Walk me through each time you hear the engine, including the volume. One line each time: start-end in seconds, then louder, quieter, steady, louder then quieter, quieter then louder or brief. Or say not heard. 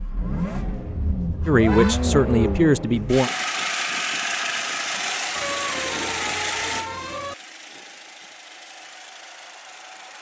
0.0-10.1 quieter.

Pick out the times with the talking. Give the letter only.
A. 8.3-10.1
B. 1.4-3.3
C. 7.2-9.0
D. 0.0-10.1
B.